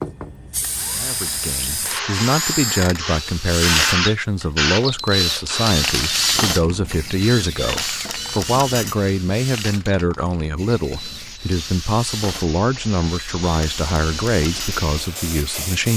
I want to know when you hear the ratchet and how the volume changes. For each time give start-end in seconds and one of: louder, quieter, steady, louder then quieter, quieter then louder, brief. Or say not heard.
not heard.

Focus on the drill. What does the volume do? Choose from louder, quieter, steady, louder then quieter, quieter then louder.
louder then quieter.